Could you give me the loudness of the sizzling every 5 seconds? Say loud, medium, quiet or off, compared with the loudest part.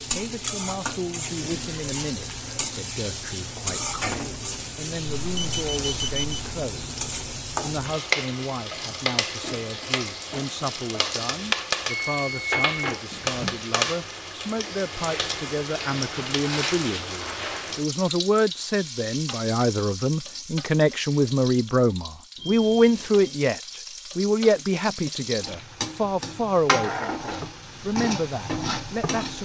loud, loud, loud, loud, medium, loud.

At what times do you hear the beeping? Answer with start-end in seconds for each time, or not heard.
5.2-6.4, 11.8-13.7, 22.4-23.3.